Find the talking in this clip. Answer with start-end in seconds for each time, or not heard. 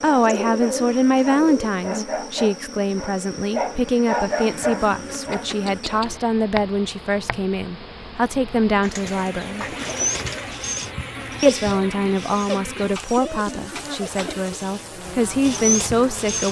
0.0-9.7, 11.4-16.4.